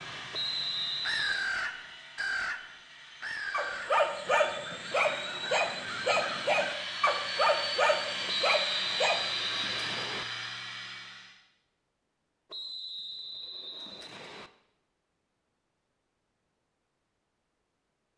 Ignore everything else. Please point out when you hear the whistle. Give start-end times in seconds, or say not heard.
0.3-1.5, 8.2-10.2, 12.5-14.5.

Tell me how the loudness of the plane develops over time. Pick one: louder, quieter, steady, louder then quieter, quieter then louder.
louder.